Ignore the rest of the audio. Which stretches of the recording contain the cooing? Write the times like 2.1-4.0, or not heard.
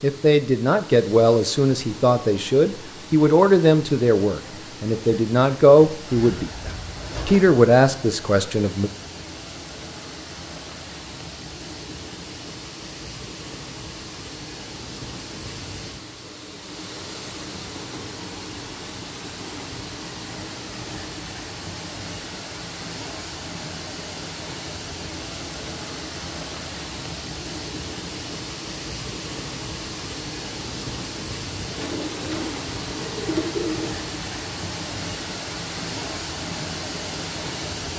6.0-7.5, 31.6-34.0.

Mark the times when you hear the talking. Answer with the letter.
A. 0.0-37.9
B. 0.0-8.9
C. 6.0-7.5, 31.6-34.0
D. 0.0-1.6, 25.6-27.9
B.